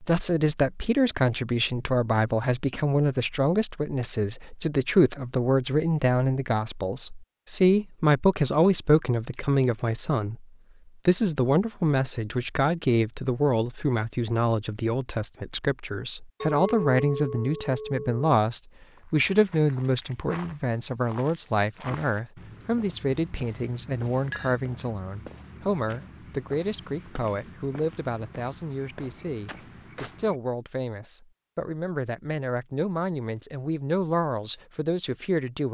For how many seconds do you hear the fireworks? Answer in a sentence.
The fireworks can't be heard in this clip.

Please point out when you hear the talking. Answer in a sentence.
The talking can be heard from 0.0 to 10.4 s and from 11.1 to 35.6 s.